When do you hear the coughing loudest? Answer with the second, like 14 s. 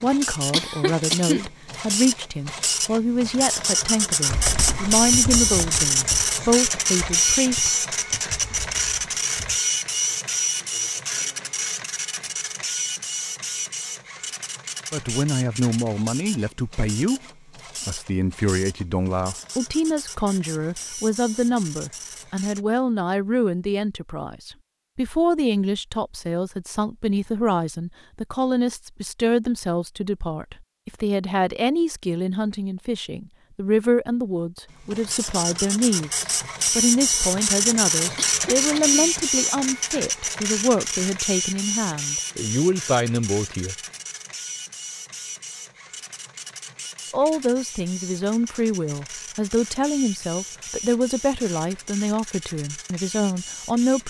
1 s.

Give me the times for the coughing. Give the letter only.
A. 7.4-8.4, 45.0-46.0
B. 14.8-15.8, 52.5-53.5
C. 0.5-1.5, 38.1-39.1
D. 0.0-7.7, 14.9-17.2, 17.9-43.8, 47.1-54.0
C.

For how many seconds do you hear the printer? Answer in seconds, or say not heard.
42 s.